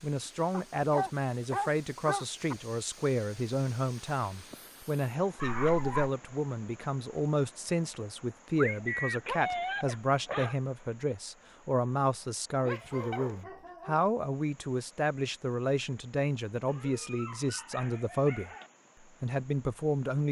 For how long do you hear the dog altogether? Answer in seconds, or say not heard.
8 s.